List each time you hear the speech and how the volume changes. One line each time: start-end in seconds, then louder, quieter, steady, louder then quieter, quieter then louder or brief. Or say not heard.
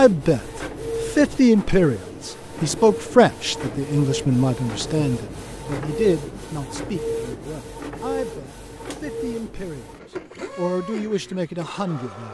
0.0-9.9 quieter
10.6-12.3 brief.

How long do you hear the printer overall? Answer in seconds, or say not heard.
12 s.